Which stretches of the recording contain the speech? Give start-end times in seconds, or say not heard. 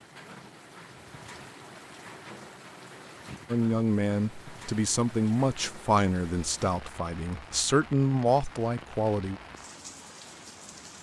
3.5-9.4.